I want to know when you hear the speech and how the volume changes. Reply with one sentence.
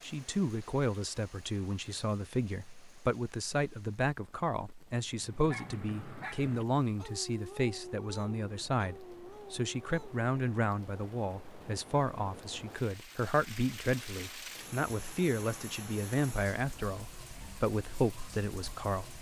The speech can be heard from 0.0 to 19.1 s, at a steady volume.